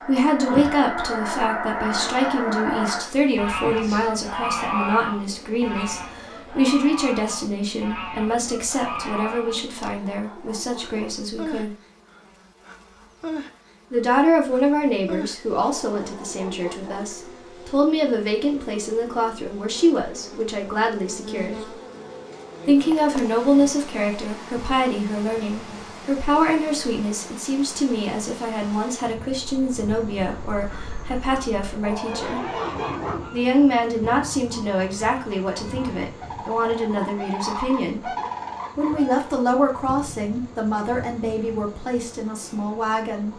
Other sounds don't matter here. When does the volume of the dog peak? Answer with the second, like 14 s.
33 s.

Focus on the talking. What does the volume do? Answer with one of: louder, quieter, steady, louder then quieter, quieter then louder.
steady.